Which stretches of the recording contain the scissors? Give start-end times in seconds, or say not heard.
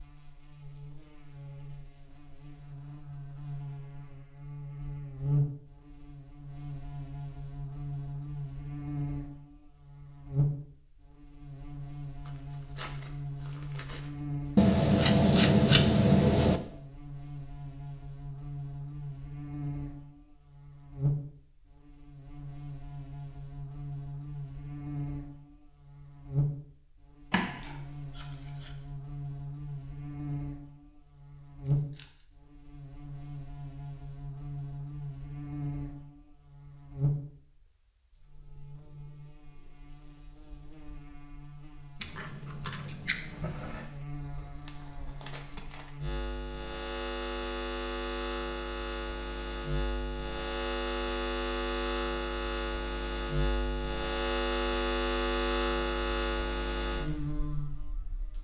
14.6-16.6, 27.3-28.7, 42.0-43.9.